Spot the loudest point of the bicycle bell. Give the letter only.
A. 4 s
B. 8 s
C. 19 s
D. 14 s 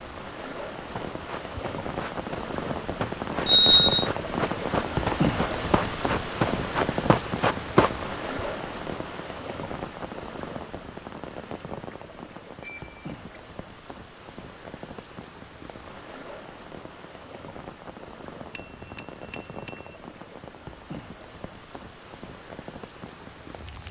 A.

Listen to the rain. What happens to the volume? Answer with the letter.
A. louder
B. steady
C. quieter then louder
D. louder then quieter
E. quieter
E.